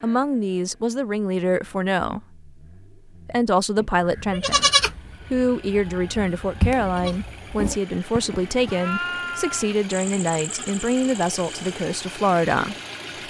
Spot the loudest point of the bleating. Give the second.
5 s.